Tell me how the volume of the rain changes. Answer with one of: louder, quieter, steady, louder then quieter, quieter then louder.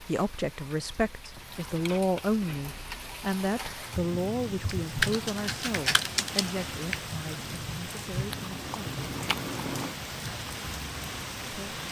louder.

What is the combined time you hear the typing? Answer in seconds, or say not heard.
2 s.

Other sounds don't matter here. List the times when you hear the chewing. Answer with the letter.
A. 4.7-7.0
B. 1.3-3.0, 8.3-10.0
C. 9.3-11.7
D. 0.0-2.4
B.